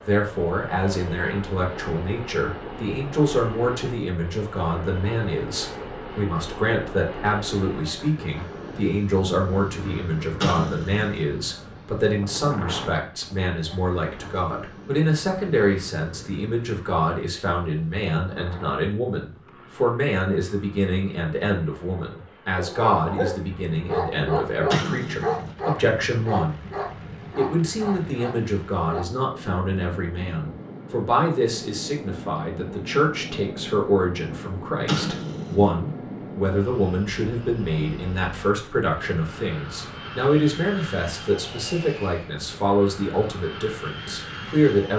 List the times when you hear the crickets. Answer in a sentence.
You can't hear the crickets here.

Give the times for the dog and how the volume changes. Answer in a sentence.
You can hear the dog from 22.6 to 29.1 s, getting quieter.